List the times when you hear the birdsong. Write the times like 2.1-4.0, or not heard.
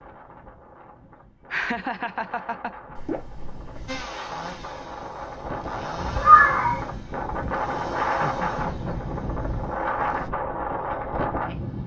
not heard.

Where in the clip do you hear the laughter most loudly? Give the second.
2 s.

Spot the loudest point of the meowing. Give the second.
6 s.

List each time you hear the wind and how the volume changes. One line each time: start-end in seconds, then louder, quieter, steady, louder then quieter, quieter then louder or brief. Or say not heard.
0.0-11.8 louder.